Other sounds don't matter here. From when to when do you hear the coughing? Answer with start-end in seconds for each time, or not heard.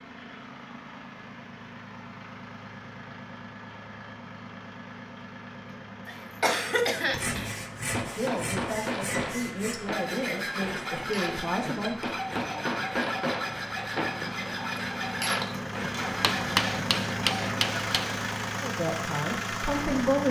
6.0-7.5.